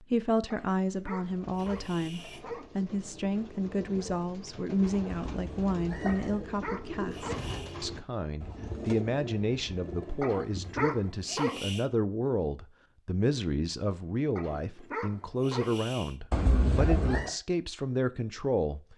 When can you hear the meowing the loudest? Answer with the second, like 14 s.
17 s.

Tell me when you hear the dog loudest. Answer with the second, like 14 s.
11 s.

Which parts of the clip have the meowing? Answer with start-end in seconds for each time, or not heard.
5.3-6.4, 16.3-17.3.